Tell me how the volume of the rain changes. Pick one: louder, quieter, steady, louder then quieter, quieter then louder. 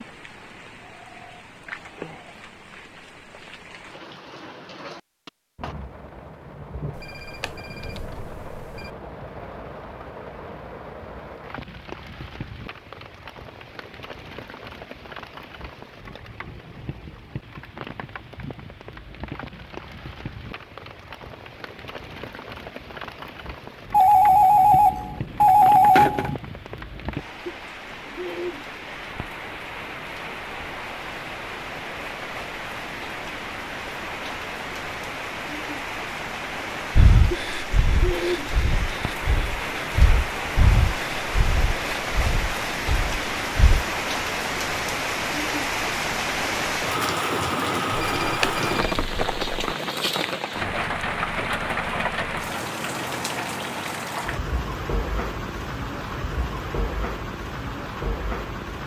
louder.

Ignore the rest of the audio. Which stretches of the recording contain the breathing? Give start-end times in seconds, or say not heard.
37.0-43.9.